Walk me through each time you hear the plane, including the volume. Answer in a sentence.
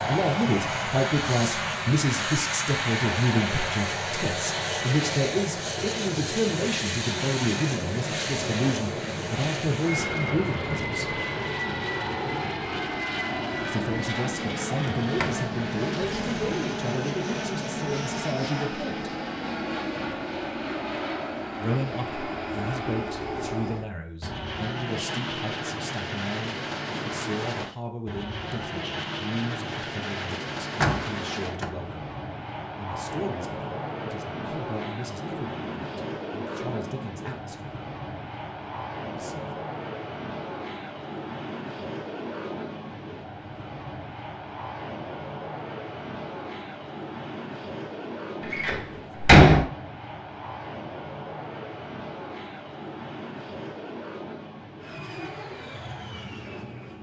You can hear the plane from 0.0 to 56.9 s, getting quieter.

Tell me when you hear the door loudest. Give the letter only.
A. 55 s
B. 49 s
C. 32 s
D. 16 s
B.